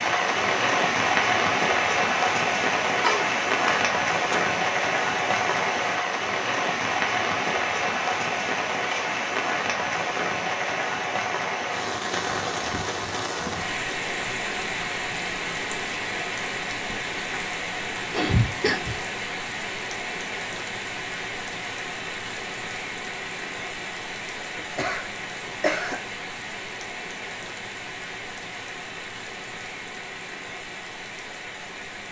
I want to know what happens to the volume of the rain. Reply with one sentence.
The volume of the rain goes down.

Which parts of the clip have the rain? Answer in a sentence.
The rain can be heard from 0.0 to 32.0 s.